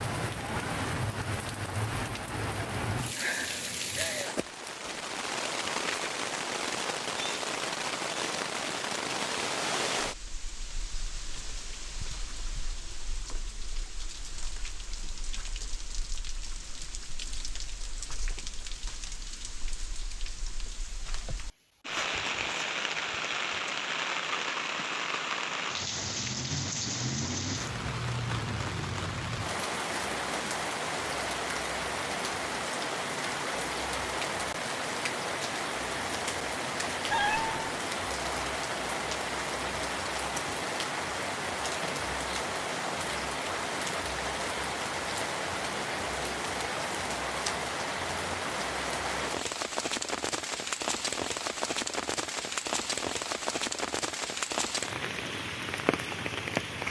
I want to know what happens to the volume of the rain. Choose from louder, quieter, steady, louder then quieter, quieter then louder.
quieter then louder.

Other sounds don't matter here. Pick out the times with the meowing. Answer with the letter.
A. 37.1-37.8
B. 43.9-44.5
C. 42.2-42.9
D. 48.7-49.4
A.